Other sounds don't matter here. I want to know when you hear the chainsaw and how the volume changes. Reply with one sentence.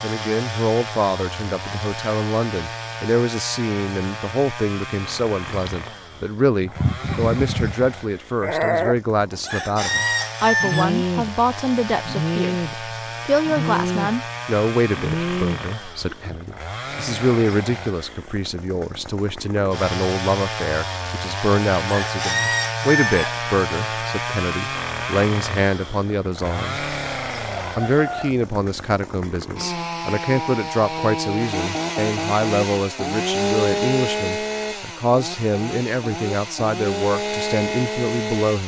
The chainsaw can be heard from 0.0 to 38.6 s, getting louder.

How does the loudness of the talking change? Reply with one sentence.
The volume of the talking stays about the same.